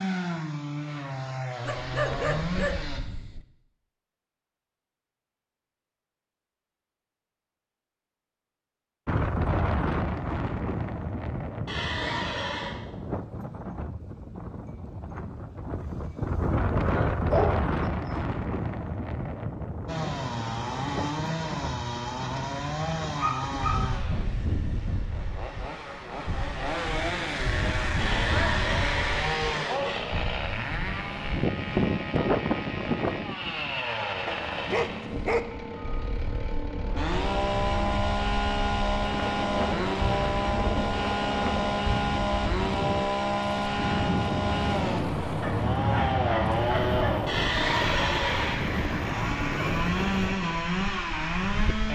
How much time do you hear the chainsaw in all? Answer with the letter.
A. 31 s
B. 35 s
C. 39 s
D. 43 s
B.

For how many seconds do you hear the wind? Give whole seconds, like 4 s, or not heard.
43 s.